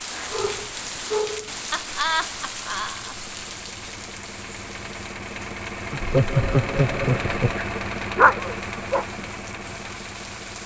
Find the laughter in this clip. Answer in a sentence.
The laughter can be heard from 1.7 to 3.2 s and from 5.9 to 7.6 s.